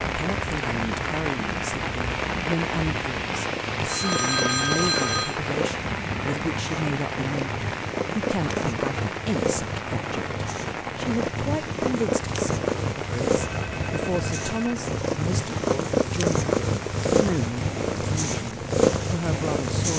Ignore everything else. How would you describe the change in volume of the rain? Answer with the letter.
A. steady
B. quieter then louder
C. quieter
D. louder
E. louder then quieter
C.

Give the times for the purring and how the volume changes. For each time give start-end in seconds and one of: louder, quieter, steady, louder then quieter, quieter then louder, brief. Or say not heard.
0.0-19.9 louder.